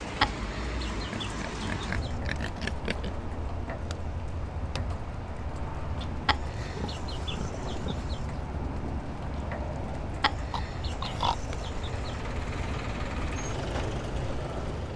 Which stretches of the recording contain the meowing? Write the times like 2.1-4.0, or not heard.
not heard.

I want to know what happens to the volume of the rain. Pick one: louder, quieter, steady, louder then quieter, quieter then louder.
steady.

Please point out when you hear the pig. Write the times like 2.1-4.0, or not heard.
1.1-3.1, 6.5-8.2, 10.5-11.4.